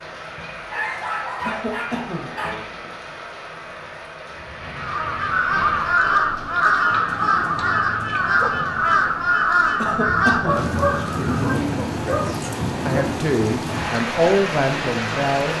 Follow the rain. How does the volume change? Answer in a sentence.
The volume of the rain goes up.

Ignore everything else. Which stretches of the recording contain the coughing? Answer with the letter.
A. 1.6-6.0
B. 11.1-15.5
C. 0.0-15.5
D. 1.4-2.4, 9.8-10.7
D.